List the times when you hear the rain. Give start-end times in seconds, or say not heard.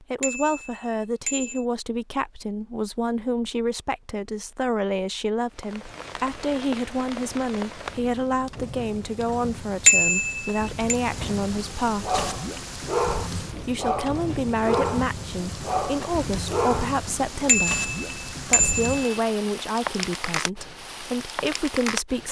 5.5-22.2.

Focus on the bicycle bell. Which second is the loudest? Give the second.
10 s.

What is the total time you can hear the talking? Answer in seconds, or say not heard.
21 s.